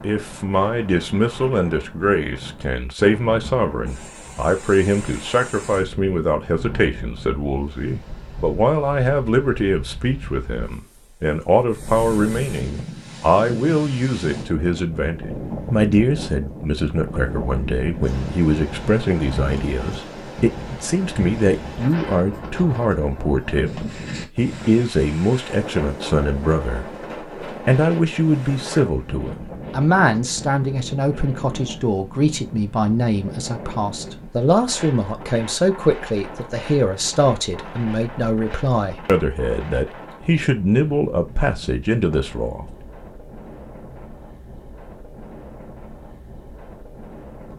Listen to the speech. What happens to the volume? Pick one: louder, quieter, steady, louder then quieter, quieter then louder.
steady.